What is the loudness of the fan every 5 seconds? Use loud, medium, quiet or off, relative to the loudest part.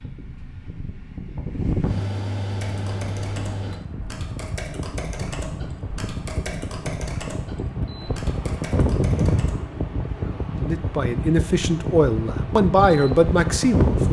medium, loud, loud.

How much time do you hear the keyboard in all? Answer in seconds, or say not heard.
7 s.